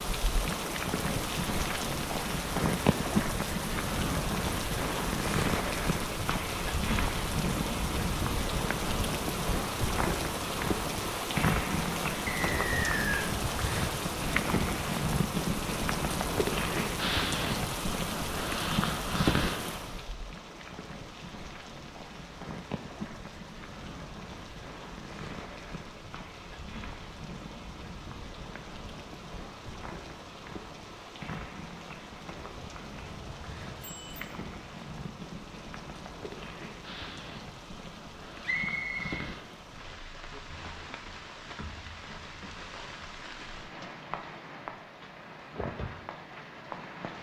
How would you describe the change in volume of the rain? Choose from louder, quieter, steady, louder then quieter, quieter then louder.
quieter.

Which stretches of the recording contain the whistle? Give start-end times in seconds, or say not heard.
12.2-13.3, 38.5-39.1.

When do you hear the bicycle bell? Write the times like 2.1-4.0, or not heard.
32.9-34.3.